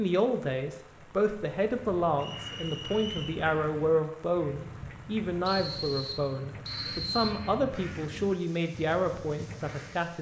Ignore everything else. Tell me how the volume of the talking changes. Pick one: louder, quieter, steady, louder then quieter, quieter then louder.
steady.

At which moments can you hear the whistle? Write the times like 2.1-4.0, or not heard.
2.1-3.4, 5.5-7.3.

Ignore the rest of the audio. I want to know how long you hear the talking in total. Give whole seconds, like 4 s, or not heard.
10 s.